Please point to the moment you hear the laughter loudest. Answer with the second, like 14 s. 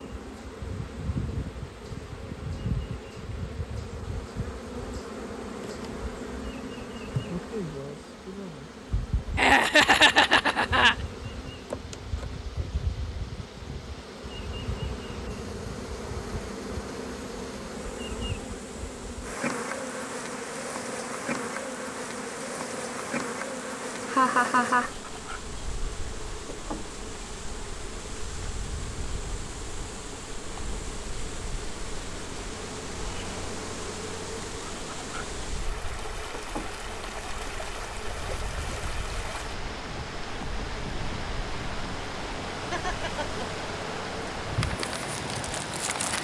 10 s.